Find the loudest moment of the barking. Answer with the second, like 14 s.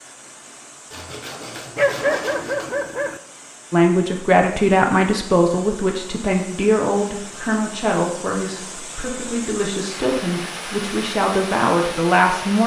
2 s.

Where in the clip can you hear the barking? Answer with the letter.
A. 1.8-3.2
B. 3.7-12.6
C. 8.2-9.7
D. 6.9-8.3
A.